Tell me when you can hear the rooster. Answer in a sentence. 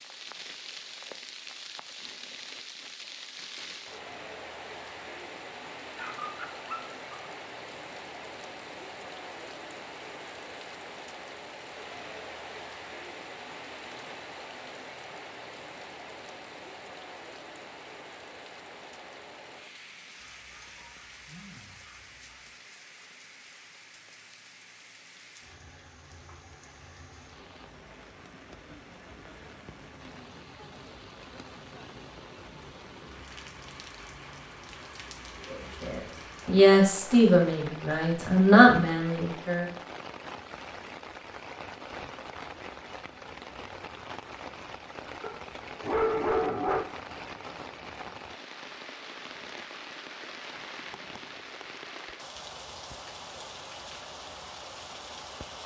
You can't hear the rooster here.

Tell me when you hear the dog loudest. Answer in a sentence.
The loudest moment of the dog is at 46 seconds.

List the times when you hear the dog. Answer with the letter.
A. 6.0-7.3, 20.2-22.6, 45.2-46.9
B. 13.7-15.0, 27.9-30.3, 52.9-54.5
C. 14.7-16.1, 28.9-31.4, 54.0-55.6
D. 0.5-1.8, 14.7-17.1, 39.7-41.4
A.